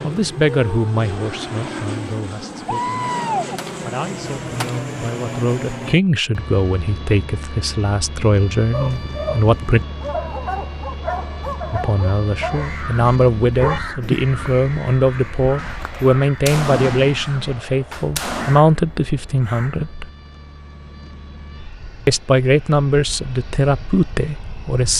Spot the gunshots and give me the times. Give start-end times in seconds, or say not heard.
2.6-4.8, 15.6-18.6.